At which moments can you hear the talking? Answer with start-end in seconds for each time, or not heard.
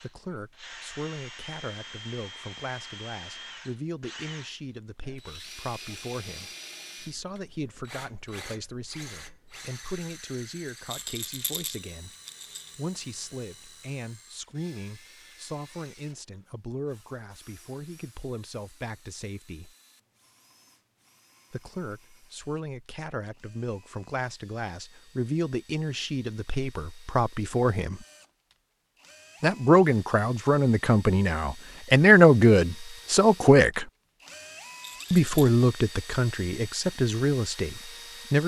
0.0-12.2, 12.8-19.8, 21.5-28.1, 29.4-33.9, 35.1-38.4.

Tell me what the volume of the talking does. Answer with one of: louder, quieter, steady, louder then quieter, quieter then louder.
louder.